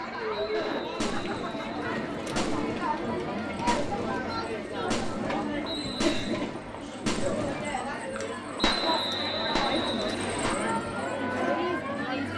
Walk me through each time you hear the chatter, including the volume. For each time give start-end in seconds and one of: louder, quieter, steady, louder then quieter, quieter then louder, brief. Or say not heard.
0.0-12.3 steady.